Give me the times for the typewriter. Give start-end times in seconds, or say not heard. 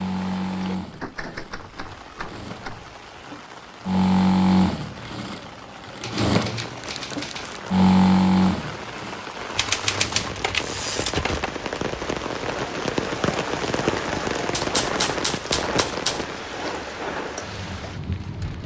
0.9-2.9, 6.0-7.6, 9.6-11.5, 14.5-16.2.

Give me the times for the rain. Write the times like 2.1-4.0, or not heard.
0.0-18.6.